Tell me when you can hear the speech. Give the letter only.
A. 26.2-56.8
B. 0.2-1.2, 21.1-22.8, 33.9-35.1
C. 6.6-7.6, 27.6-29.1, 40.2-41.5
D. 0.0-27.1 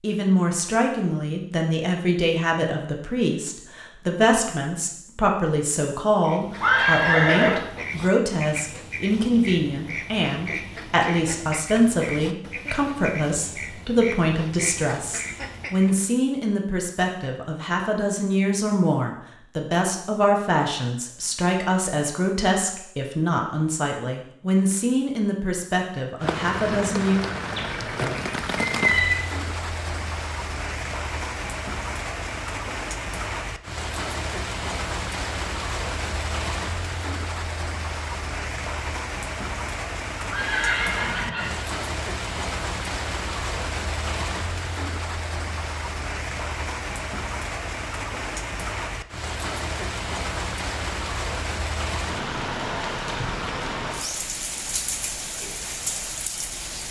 D.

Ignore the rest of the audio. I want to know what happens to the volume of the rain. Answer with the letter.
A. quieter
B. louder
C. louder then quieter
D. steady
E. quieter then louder
D.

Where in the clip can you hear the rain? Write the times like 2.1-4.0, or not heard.
26.2-56.8.